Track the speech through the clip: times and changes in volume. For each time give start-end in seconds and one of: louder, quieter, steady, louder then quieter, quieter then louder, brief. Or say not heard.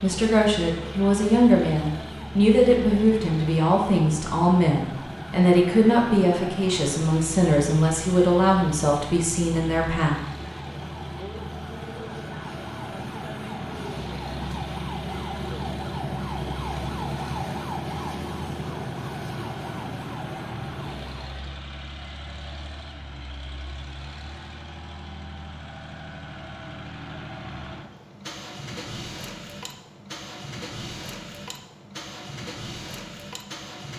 0.0-10.2 steady.